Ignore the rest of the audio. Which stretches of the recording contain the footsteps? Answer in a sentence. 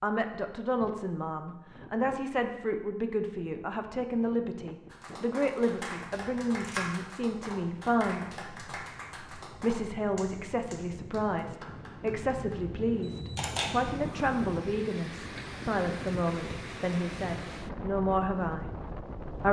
The footsteps can't be heard in this clip.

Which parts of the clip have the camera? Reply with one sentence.
The camera can be heard from 5.5 to 7.0 s and from 13.0 to 14.2 s.